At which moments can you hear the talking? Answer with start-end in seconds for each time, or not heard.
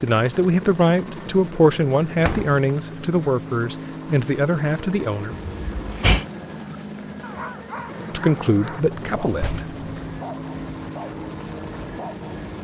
0.0-5.3, 8.1-9.7.